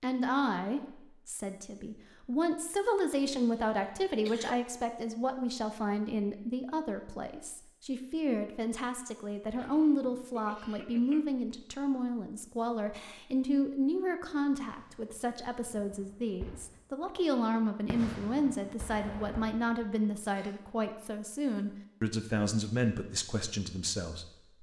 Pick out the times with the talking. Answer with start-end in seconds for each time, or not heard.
0.0-24.2.